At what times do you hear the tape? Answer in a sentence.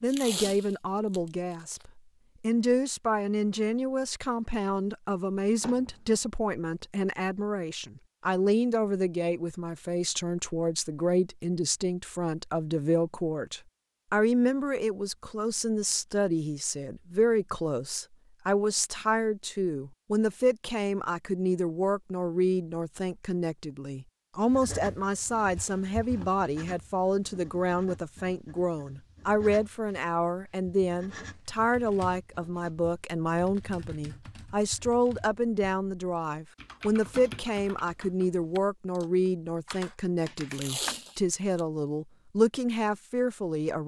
The tape can be heard from 0.1 to 1.9 s and from 40.5 to 41.6 s.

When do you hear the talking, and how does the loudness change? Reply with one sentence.
The talking can be heard from 0.0 to 43.8 s, at a steady volume.